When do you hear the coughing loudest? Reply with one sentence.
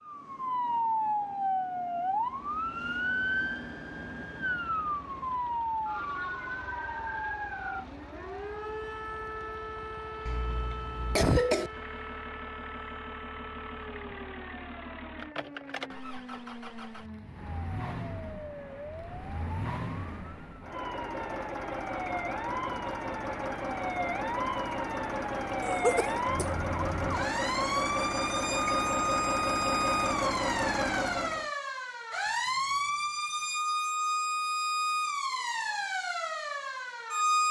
The loudest moment of the coughing is at 11 seconds.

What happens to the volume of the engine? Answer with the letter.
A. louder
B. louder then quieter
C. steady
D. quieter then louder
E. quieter
A.